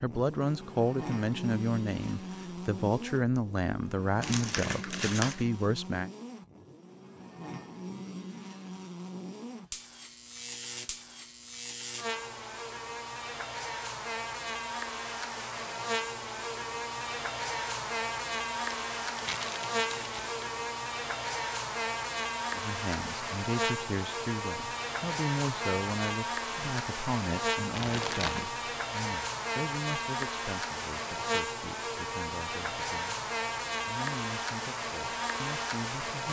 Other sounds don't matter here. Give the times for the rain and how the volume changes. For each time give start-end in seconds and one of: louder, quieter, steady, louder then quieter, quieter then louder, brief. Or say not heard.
not heard.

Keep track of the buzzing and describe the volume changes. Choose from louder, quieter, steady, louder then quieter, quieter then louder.
louder.